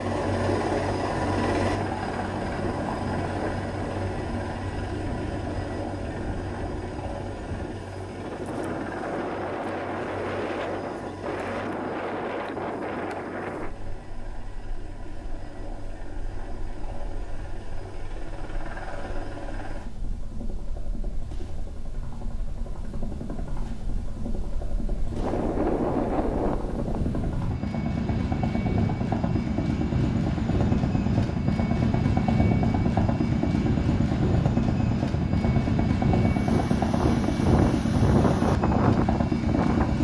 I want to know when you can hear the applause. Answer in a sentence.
You can't hear the applause here.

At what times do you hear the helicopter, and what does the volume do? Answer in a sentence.
You can hear the helicopter from 0.0 to 40.0 s, getting quieter then louder.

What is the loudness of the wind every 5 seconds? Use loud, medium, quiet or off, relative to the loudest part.
medium, medium, medium, quiet, quiet, loud, loud, loud.